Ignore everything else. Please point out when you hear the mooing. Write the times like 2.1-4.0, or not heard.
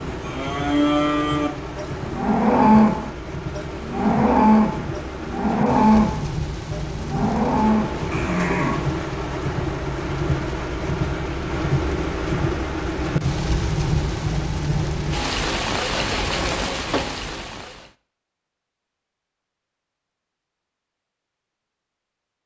0.0-8.9.